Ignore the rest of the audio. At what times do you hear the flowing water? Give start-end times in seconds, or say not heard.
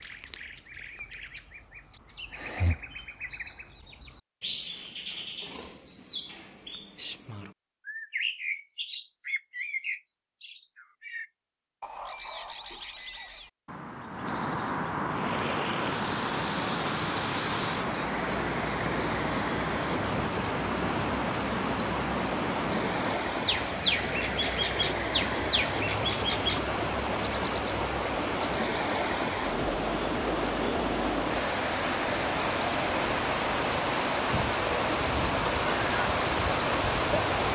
15.1-37.5.